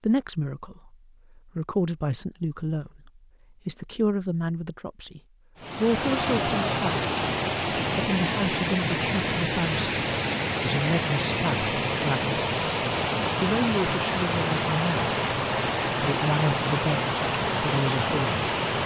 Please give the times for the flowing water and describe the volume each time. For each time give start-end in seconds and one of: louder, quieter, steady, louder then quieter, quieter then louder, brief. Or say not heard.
5.5-18.8 steady.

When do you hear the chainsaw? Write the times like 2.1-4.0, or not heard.
not heard.